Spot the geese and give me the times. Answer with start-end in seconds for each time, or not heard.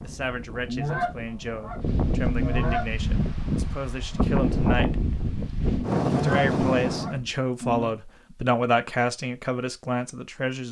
0.7-2.9, 6.0-8.0.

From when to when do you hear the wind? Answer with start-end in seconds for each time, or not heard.
0.0-7.2.